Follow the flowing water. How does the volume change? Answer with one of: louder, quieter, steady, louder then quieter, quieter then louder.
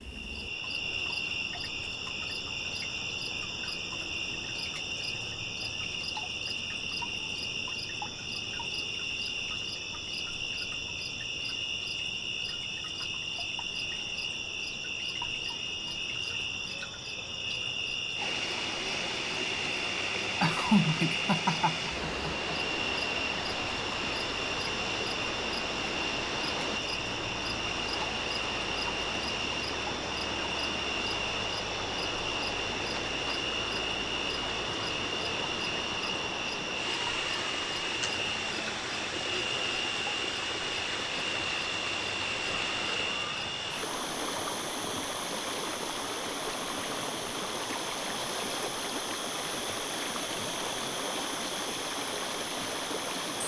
steady.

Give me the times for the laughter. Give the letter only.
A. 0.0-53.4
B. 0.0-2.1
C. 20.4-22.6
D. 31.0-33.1
C.